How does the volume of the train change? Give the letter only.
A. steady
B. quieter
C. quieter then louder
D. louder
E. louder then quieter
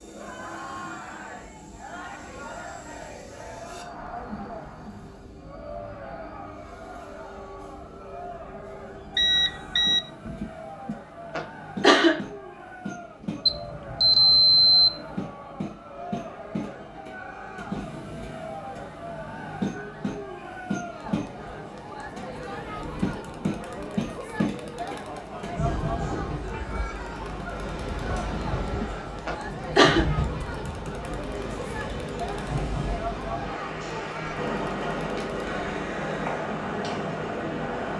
D.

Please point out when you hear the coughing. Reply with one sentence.
The coughing can be heard from 10.2 to 12.2 s and from 28.1 to 30.1 s.